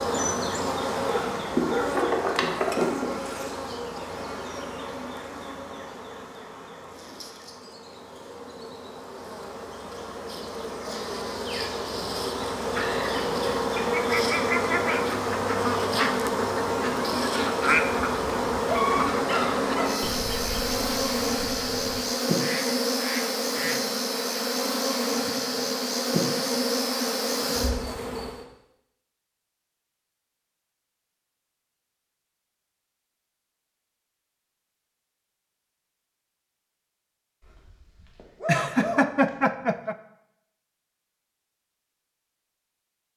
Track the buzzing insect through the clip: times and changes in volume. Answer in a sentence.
You can hear the buzzing insect from 0.0 to 28.4 s, getting quieter then louder.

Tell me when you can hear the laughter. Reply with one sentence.
The laughter can be heard from 38.5 to 40.0 s.